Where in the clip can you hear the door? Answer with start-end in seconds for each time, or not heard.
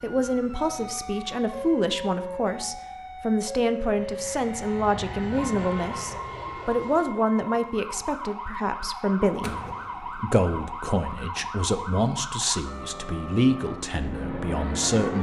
9.4-10.2.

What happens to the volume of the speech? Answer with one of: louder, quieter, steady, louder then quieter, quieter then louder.
steady.